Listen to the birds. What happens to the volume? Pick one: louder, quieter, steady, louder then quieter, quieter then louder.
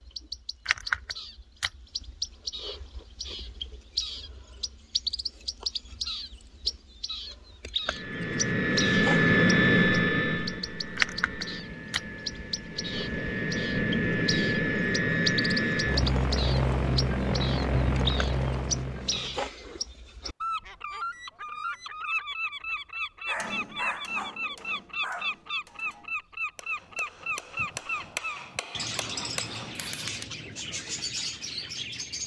steady.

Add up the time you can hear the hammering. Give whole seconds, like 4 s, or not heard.
7 s.